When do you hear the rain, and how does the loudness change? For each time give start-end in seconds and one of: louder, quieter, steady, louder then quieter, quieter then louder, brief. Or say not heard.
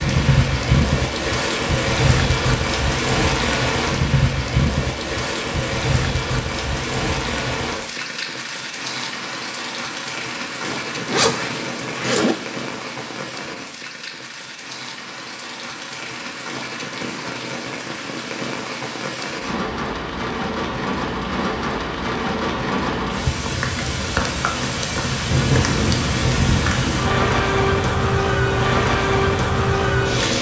0.0-30.3 quieter then louder.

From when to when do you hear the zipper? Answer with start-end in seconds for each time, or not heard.
10.6-12.3.